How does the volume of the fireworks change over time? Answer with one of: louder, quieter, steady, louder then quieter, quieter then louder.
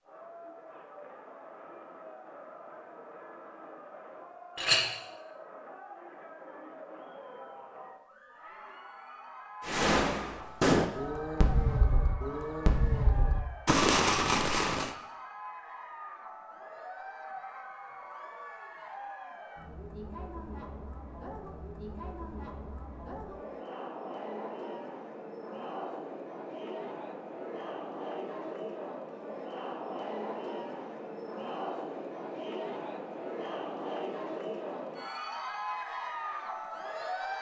quieter then louder.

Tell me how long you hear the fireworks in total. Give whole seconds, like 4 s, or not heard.
5 s.